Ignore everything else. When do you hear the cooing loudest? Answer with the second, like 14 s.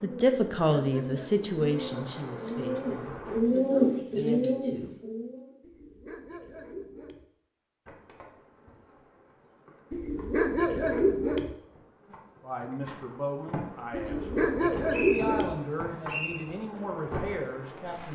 4 s.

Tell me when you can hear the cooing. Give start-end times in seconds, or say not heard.
0.0-5.7.